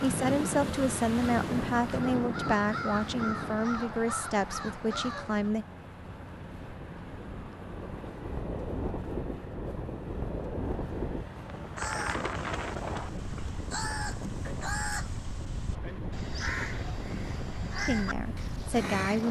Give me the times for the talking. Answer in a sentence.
The talking can be heard from 0.0 to 5.7 s and from 17.9 to 19.2 s.